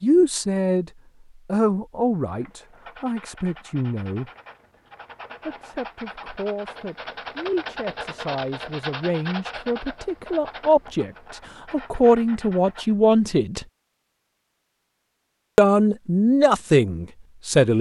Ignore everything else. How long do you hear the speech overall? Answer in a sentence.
You can hear the speech for 15 seconds altogether.